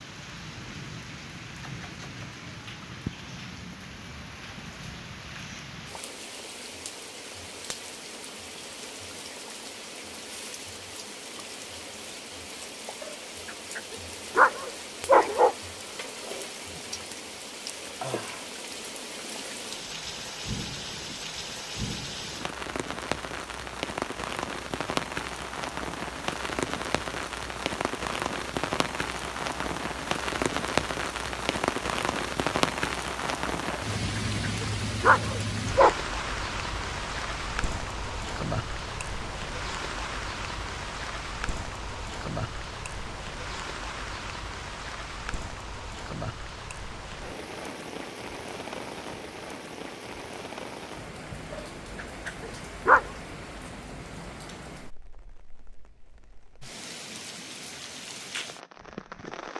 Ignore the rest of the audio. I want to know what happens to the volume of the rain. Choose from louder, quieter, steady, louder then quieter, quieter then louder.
louder then quieter.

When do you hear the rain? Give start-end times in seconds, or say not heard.
0.0-59.5.